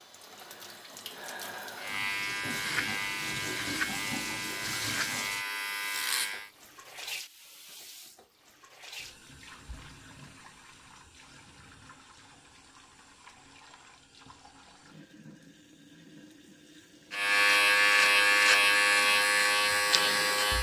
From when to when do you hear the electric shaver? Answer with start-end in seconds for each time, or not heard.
1.8-6.5, 17.1-20.5.